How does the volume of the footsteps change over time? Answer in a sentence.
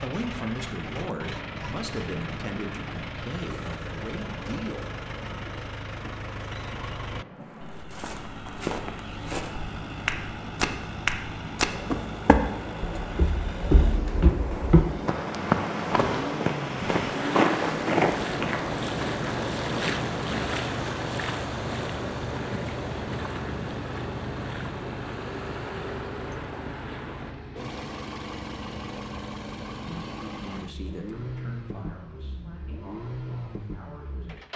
The volume of the footsteps goes up.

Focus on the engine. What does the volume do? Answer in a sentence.
The volume of the engine stays about the same.